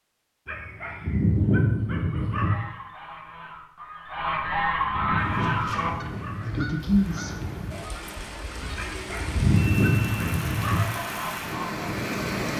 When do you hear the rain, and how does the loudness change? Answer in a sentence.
You can hear the rain from 5.2 to 12.5 s, getting louder.